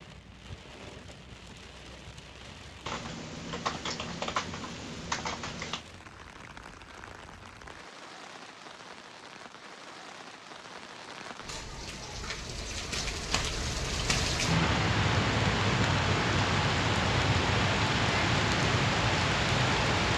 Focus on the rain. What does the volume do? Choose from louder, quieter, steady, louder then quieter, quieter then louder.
louder.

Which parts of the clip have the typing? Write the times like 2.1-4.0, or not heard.
2.9-5.8.